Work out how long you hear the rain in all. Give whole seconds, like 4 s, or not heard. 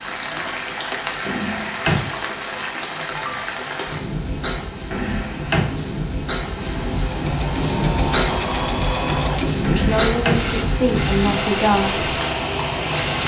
13 s.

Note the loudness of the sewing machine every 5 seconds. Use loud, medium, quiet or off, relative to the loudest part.
off, loud, loud.